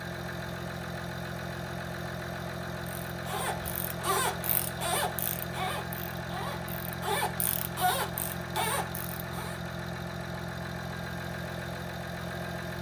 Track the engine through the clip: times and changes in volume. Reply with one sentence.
You can hear the engine from 0.0 to 12.7 s, at a steady volume.